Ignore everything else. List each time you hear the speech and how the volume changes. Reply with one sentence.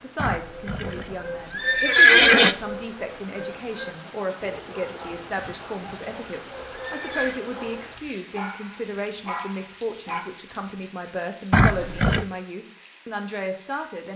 You can hear the speech from 0.0 to 14.1 s, at a steady volume.